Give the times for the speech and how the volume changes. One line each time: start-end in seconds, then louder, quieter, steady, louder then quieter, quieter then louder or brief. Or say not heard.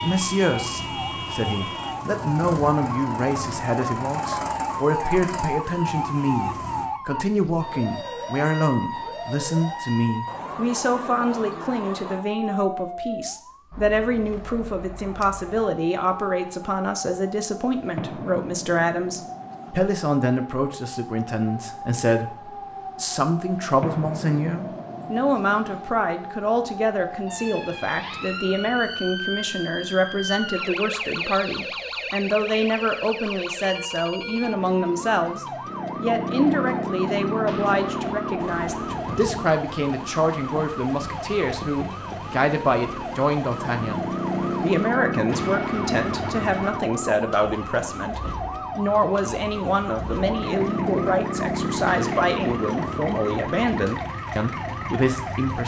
0.0-55.6 steady.